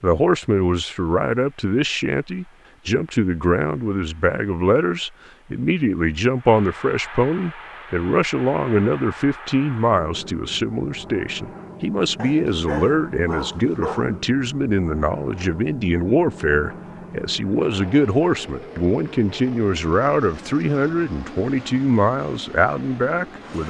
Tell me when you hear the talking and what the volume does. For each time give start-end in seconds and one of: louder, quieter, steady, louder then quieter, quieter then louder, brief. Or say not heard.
0.0-23.6 steady.